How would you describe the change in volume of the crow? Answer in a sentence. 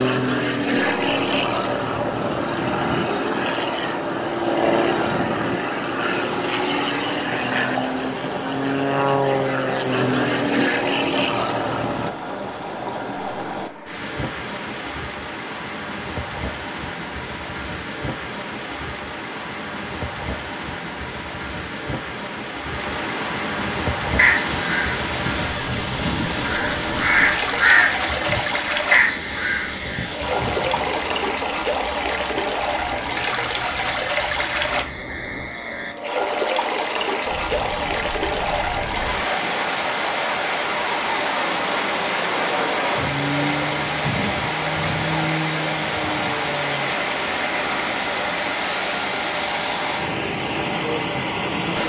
The volume of the crow goes up, then down.